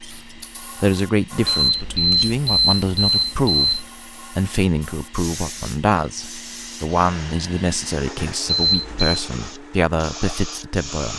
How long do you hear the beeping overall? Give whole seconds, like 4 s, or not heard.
3 s.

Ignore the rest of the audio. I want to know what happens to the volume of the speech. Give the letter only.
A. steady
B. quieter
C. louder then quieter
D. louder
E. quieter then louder
A.